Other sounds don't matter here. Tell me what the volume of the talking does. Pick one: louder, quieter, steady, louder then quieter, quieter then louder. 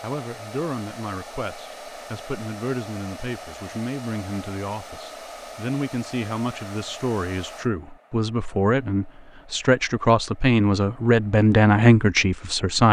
louder.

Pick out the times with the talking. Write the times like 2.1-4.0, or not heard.
0.0-12.8.